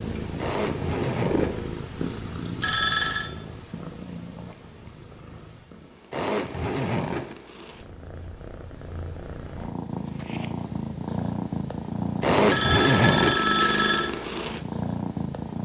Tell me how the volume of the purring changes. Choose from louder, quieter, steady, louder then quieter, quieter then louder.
quieter then louder.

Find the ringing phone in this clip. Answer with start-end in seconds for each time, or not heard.
2.6-3.3, 12.4-14.1.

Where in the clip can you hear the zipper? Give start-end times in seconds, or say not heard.
0.3-1.6, 6.1-7.3, 12.2-13.4.